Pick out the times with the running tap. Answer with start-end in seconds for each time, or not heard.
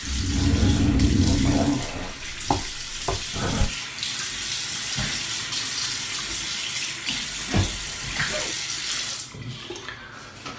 0.0-10.5.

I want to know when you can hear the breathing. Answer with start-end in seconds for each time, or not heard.
0.0-3.7.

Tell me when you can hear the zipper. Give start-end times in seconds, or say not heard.
0.3-2.1, 7.0-8.6.